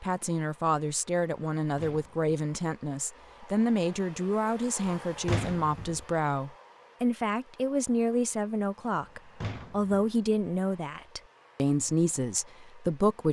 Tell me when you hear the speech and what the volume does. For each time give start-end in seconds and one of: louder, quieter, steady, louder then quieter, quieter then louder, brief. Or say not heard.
0.0-13.2 steady.